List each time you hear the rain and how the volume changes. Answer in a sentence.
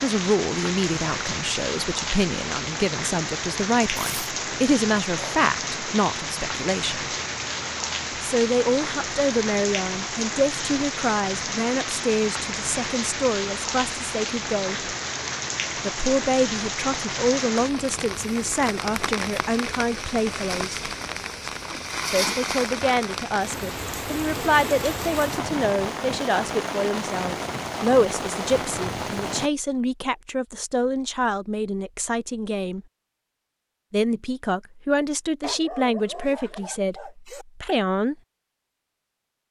The rain can be heard from 0.0 to 29.5 s, at a steady volume.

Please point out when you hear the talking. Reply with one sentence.
The talking can be heard from 0.0 to 7.1 s, from 8.2 to 14.9 s, from 15.8 to 20.8 s, from 22.1 to 32.8 s and from 33.9 to 38.1 s.